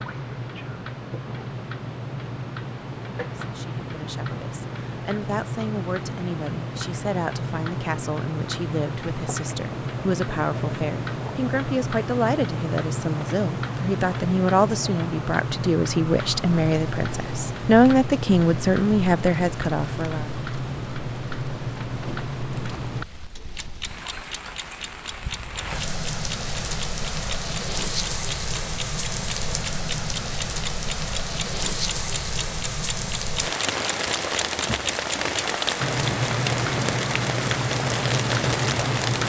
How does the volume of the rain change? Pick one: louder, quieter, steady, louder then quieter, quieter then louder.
louder.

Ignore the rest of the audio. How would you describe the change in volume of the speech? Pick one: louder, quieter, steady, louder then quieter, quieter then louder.
louder.